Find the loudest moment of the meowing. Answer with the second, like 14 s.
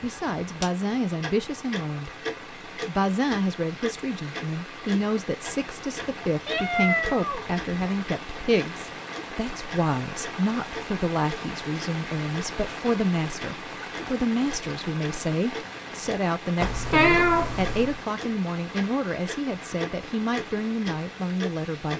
17 s.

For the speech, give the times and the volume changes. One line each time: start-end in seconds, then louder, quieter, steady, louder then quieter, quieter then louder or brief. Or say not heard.
0.0-2.1 brief
2.9-21.9 steady.